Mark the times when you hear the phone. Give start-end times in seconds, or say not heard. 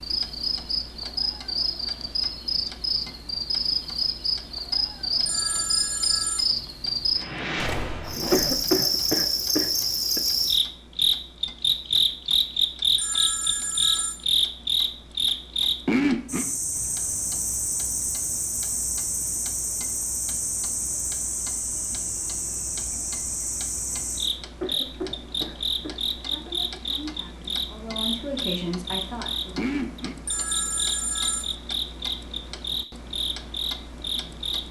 5.2-6.5, 12.9-14.2, 30.2-31.6.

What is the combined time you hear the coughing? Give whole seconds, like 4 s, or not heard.
4 s.